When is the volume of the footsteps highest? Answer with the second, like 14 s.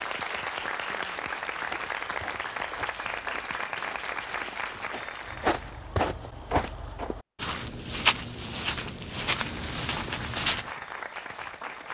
8 s.